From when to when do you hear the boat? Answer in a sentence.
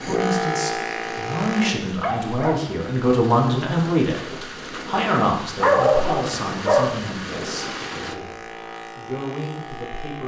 You can hear the boat from 0.0 to 1.8 s and from 7.5 to 10.2 s.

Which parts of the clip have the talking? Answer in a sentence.
The talking can be heard from 0.0 to 10.2 s.